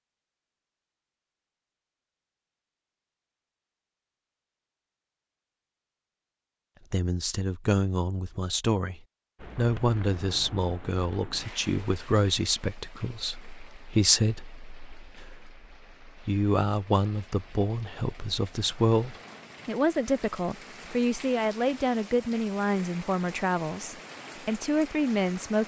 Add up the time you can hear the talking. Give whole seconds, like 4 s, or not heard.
19 s.